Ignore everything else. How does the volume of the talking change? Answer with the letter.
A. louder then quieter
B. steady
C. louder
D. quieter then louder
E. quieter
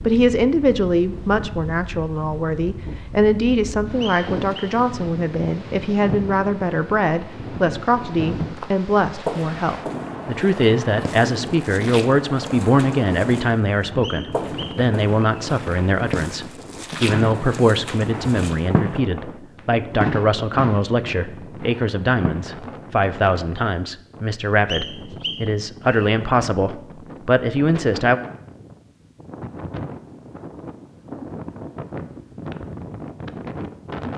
B.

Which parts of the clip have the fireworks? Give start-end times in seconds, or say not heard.
17.1-19.4, 20.0-22.9.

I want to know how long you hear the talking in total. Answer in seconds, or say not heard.
28 s.